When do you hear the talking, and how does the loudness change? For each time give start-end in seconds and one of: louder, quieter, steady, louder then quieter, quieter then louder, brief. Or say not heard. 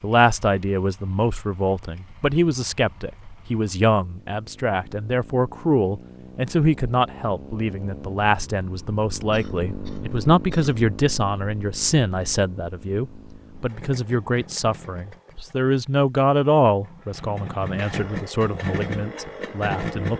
0.0-20.1 steady.